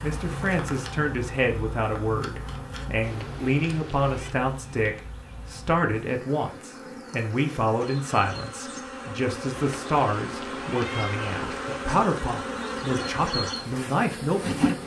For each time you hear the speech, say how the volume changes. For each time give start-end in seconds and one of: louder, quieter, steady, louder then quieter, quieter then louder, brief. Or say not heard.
0.0-14.8 steady.